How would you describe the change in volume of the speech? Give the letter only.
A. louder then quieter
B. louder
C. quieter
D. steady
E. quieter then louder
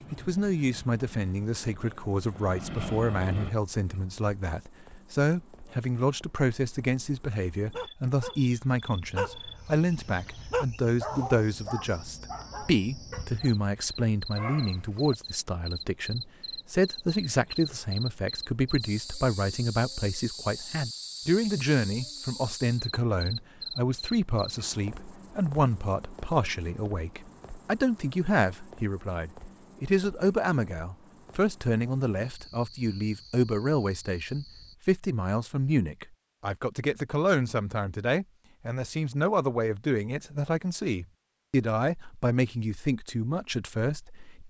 D.